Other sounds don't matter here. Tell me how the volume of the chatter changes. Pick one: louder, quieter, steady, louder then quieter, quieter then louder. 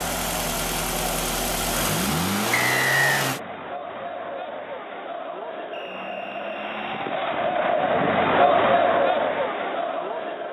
louder.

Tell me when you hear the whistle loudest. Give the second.
3 s.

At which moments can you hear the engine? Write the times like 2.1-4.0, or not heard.
0.0-3.4.